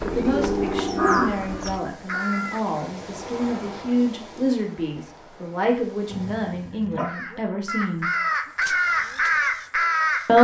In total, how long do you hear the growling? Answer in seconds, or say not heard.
2 s.